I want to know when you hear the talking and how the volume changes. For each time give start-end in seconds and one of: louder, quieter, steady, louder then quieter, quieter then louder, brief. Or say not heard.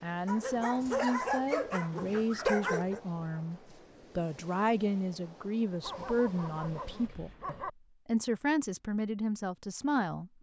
0.0-10.3 steady.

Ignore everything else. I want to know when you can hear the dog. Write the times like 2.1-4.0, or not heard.
0.2-3.0, 5.8-7.7.